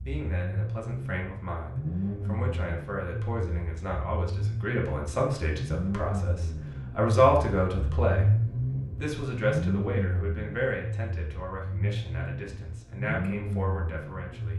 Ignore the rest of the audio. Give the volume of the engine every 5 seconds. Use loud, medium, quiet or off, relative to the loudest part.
medium, loud, medium.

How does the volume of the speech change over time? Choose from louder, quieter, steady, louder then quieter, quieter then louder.
louder then quieter.